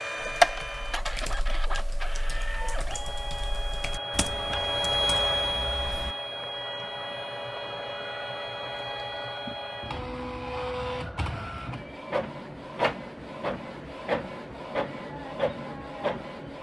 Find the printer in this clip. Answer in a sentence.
The printer can be heard from 0.0 to 16.5 s.